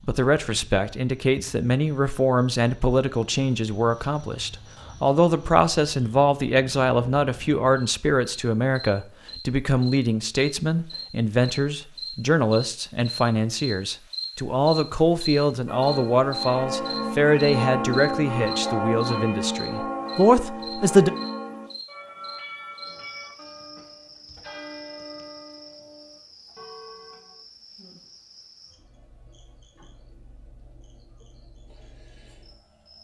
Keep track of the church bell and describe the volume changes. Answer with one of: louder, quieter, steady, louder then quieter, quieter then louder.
quieter.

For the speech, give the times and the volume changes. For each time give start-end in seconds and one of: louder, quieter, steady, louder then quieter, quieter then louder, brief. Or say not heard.
0.1-21.1 steady.